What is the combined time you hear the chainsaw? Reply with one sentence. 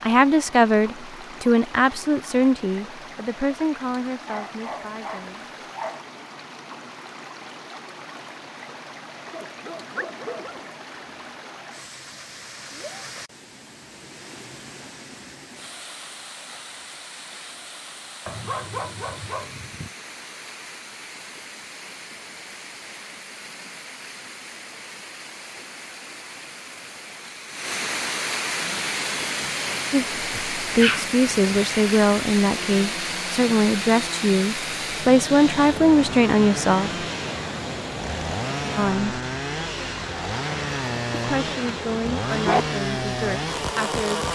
The chainsaw can be heard for 16 seconds in total.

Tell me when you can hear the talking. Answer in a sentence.
The talking can be heard from 0.0 to 5.5 s, from 29.9 to 37.0 s, from 38.8 to 39.2 s and from 41.1 to 44.2 s.